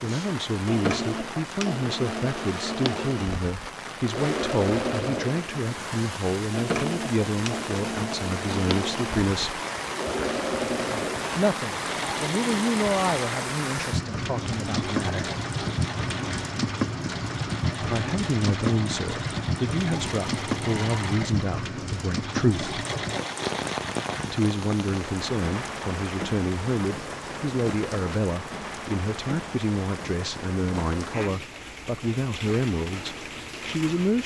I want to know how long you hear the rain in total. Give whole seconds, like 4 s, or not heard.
34 s.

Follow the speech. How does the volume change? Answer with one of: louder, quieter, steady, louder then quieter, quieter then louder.
steady.